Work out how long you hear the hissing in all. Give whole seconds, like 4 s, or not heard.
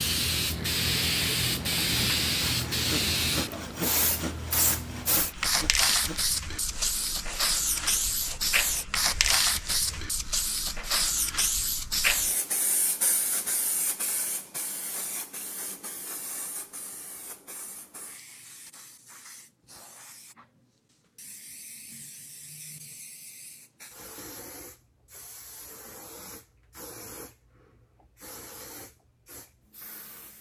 30 s.